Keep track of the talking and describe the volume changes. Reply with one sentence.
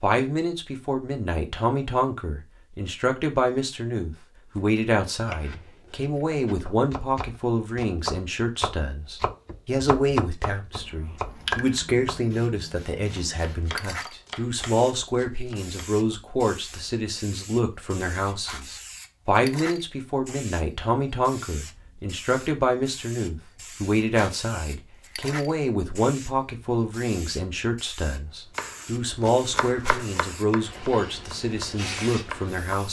The loudness of the talking stays about the same.